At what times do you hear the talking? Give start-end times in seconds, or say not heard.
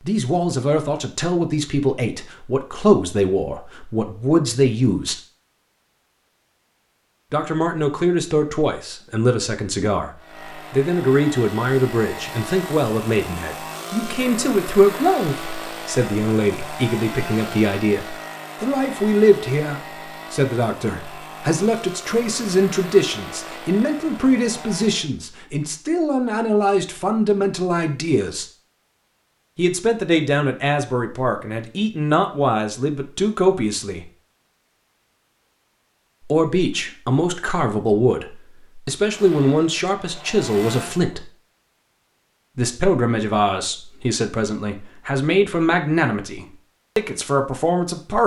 0.0-5.2, 7.3-28.4, 29.6-34.1, 36.3-41.3, 42.5-48.2.